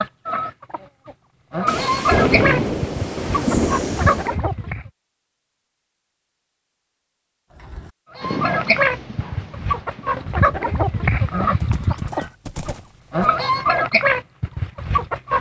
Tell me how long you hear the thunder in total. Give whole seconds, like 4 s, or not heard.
3 s.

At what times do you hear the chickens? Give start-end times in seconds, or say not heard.
0.0-4.9, 8.2-15.3.